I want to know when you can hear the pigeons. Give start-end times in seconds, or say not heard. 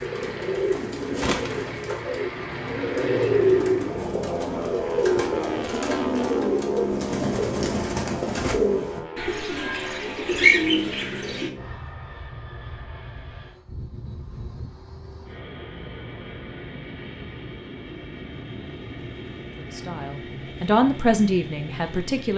0.0-11.5.